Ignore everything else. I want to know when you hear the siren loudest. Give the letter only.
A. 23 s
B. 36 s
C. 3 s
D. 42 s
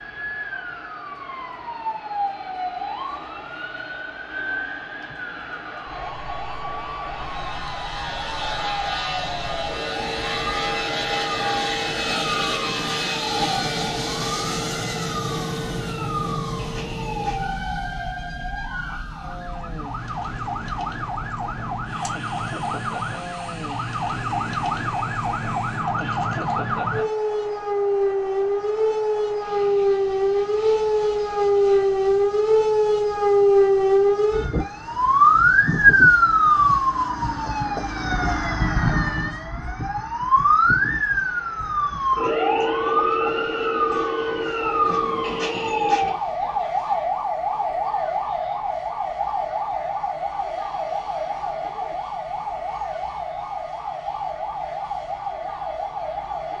B.